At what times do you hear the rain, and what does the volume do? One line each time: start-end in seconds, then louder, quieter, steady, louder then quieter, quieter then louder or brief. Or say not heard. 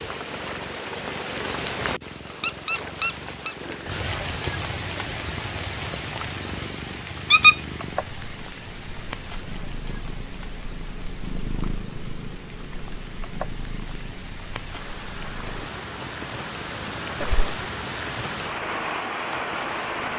0.0-20.1 quieter then louder.